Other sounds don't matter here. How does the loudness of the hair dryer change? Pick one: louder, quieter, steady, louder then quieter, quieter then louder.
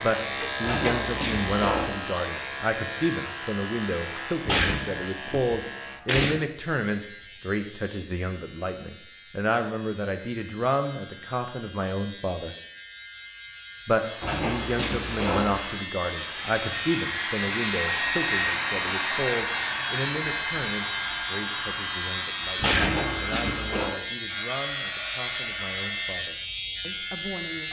louder then quieter.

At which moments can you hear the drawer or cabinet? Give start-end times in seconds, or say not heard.
0.6-1.9, 14.2-15.7, 22.8-23.9.